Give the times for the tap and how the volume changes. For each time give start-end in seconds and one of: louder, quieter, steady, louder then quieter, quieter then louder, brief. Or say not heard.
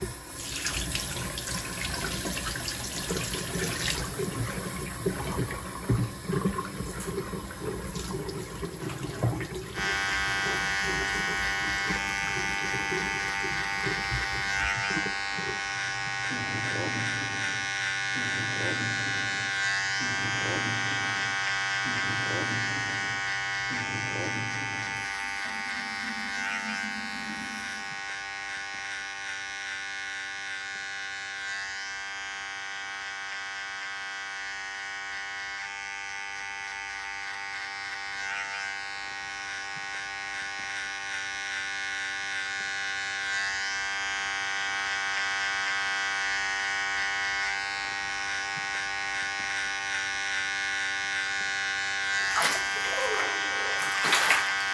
0.0-28.0 quieter
52.2-54.6 brief.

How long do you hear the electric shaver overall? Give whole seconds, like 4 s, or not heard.
45 s.